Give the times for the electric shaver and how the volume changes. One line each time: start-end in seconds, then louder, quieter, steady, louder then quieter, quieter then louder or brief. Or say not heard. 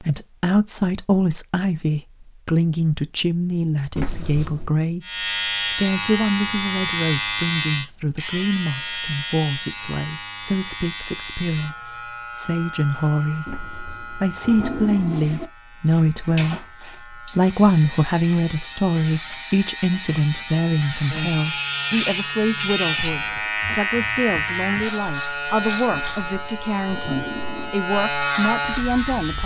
5.0-29.4 quieter then louder.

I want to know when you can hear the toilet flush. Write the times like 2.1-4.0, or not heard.
4.0-4.7, 13.4-15.5, 25.9-27.8.